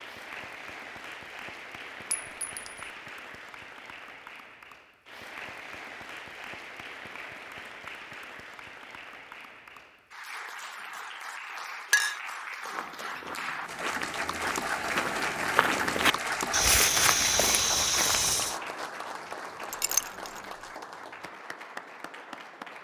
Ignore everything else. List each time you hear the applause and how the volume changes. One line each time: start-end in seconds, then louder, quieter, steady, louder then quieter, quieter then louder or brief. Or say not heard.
0.0-22.7 louder then quieter.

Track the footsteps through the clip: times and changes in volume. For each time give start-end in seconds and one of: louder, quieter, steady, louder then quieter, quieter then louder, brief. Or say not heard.
12.7-18.6 louder.